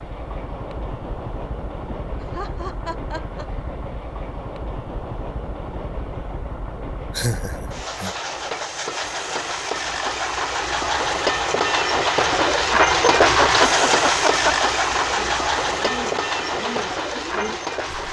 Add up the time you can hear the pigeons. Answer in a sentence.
The pigeons can be heard for 3 seconds in total.